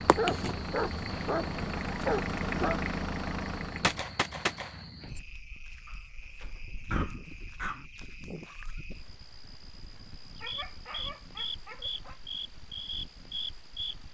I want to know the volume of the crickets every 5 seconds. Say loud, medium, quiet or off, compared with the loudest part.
loud, medium, loud.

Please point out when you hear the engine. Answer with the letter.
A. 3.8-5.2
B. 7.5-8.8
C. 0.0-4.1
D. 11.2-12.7
C.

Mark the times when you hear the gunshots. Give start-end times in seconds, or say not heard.
3.8-5.2.